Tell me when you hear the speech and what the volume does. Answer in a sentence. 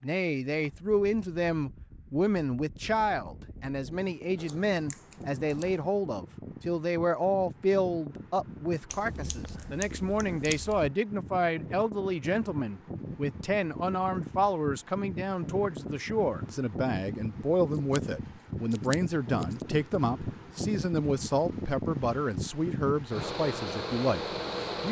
You can hear the speech from 0.0 to 24.8 s, at a steady volume.